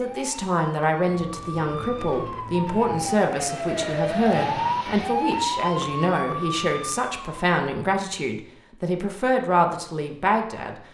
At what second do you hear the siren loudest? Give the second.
5 s.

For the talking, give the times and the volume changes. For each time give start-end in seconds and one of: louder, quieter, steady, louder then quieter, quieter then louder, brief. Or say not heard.
0.0-10.8 steady.